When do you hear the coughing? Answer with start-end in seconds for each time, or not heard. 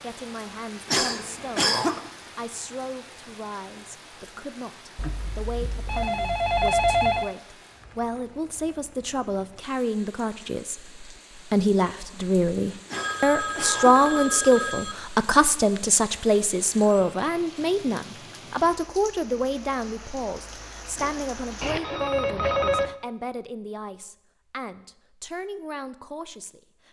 0.8-2.0, 12.8-14.0, 20.9-22.1.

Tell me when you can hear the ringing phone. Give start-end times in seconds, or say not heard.
5.0-7.3, 12.9-14.9, 21.6-22.9.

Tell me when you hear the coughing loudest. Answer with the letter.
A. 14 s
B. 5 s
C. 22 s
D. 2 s
D.